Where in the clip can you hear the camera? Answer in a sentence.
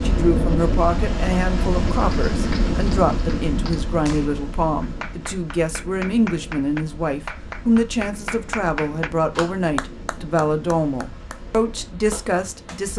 You can't hear the camera here.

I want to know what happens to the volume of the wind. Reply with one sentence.
The loudness of the wind goes down.